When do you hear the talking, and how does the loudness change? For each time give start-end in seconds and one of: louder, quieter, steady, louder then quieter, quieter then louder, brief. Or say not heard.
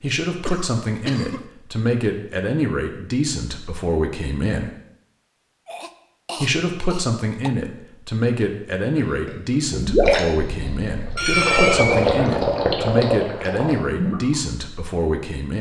0.0-4.7 steady
6.3-15.5 steady.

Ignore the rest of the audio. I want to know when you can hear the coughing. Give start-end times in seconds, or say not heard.
0.4-1.4, 5.7-7.5, 11.2-12.1.